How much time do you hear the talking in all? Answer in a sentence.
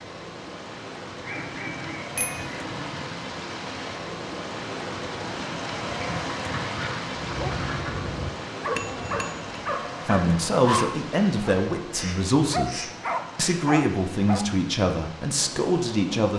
You can hear the talking for 6 seconds altogether.